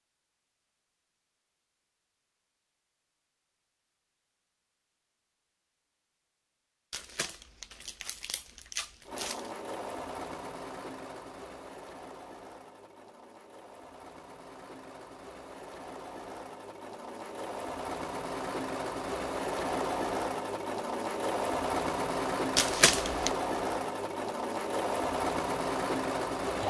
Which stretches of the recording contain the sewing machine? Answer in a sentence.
You can hear the sewing machine from 9.1 to 26.6 s.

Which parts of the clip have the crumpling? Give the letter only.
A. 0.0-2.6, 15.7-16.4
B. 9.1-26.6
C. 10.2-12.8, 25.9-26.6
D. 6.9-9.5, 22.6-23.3
D.